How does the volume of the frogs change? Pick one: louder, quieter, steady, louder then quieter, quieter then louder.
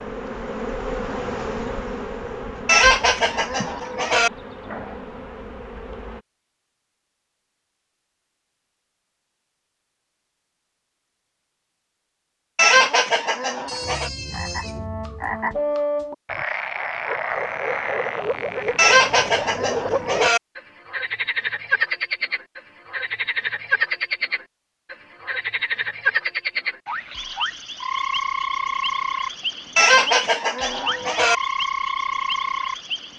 steady.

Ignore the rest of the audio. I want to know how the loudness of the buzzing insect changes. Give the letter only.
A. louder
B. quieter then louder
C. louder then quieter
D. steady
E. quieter
E.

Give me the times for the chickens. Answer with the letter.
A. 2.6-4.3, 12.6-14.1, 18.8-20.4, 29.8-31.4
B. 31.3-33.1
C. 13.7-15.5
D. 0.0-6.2
A.